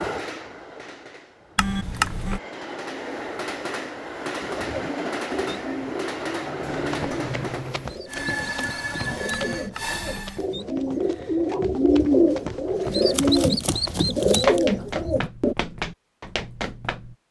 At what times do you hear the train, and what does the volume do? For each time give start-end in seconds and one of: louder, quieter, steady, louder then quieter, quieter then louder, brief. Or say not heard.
0.0-10.4 louder.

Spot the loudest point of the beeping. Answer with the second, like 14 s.
2 s.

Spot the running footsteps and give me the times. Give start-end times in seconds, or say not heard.
6.7-17.1.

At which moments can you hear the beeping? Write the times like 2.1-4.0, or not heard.
1.6-2.4, 9.3-10.4.